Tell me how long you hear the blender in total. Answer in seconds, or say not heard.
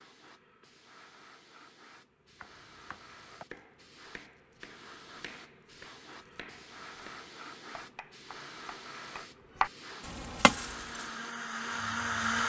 2 s.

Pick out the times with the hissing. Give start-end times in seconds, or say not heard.
0.0-12.4.